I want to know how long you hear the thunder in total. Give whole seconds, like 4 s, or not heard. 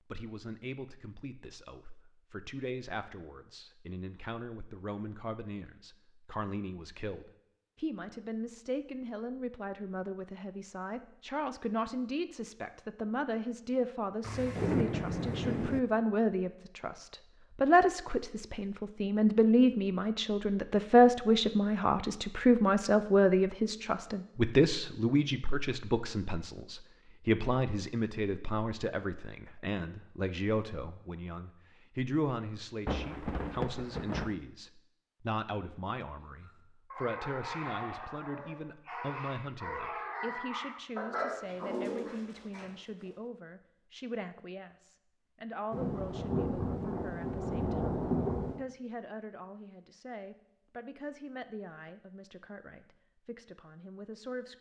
6 s.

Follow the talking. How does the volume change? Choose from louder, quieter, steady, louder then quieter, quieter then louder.
louder then quieter.